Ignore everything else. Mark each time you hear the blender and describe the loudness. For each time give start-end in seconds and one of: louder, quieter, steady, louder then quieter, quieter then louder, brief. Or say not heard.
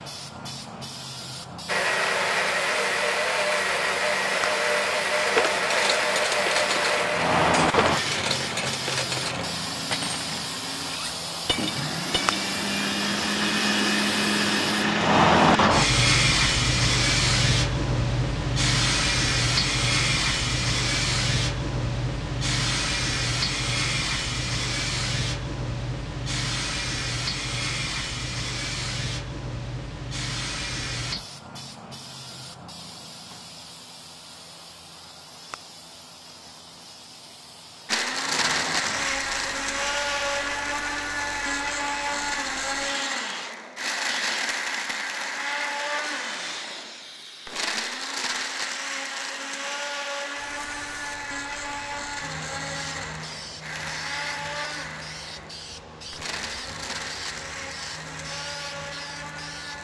1.6-15.7 quieter then louder
37.9-59.7 quieter.